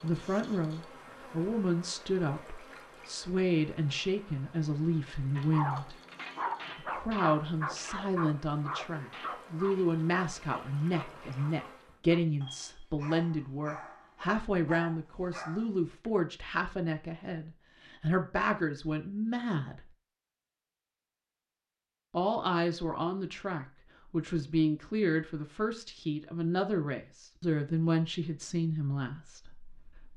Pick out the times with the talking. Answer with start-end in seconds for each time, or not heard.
0.0-6.0, 6.8-19.9, 22.1-30.1.